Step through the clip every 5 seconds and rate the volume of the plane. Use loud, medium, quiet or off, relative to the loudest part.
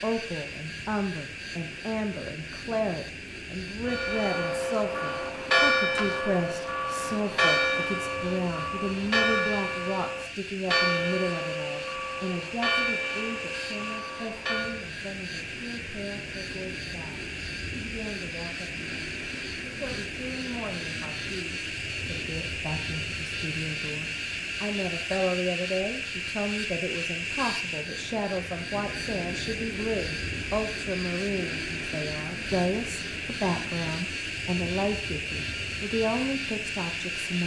medium, medium, medium, loud, loud, loud, loud, loud.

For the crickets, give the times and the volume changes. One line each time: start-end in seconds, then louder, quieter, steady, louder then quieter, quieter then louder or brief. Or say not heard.
not heard.